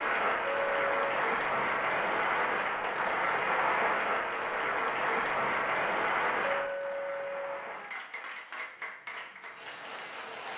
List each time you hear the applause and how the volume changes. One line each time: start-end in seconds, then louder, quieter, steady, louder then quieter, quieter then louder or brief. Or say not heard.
0.0-10.5 quieter.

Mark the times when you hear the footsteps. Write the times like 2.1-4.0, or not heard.
not heard.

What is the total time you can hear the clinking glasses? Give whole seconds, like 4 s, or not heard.
2 s.